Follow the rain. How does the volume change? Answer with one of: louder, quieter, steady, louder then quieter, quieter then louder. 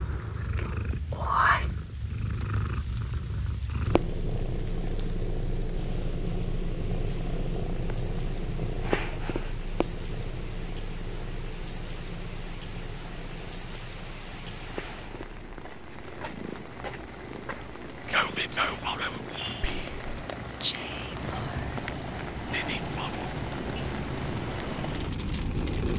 louder.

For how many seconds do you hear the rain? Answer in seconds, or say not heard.
26 s.